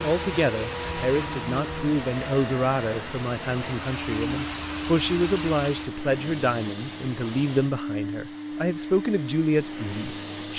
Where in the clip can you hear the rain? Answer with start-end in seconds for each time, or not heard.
0.0-6.0.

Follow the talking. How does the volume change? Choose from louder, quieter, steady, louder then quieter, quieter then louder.
steady.